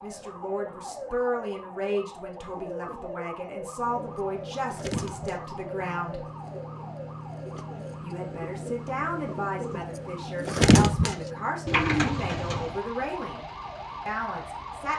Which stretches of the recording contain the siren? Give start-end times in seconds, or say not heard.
0.0-14.9.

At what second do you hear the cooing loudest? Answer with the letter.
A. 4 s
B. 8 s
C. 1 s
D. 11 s
D.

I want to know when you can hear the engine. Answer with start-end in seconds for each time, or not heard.
3.6-14.9.